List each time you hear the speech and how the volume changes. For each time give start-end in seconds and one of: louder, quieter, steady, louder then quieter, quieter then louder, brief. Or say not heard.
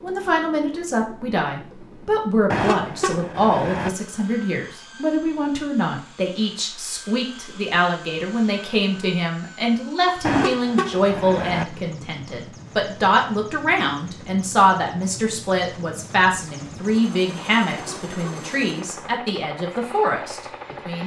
0.0-21.0 steady.